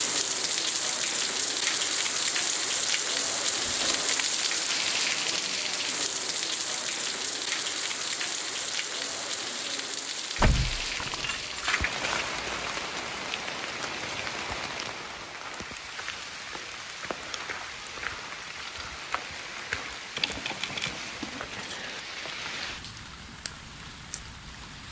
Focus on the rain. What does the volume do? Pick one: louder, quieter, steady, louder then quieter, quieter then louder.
quieter.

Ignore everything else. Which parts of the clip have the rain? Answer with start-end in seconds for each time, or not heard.
0.0-24.8.